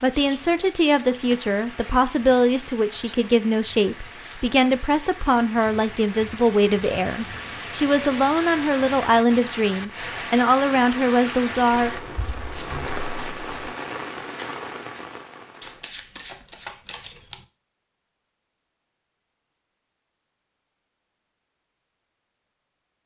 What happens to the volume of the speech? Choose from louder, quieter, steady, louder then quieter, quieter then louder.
steady.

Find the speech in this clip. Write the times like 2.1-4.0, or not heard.
0.0-12.0.